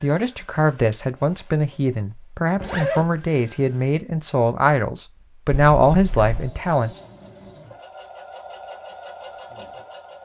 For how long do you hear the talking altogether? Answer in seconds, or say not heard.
7 s.